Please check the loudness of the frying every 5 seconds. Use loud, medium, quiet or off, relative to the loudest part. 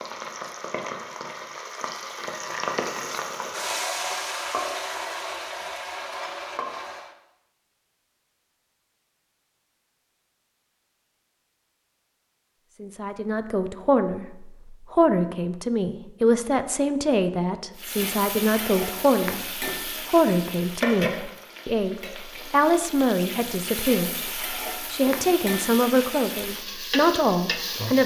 loud, loud, off, loud, loud, loud.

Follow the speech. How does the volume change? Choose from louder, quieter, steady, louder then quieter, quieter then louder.
steady.